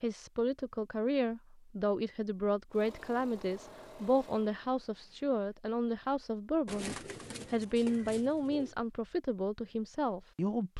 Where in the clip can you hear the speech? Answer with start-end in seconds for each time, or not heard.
0.0-10.7.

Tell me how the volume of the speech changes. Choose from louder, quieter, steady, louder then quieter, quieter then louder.
steady.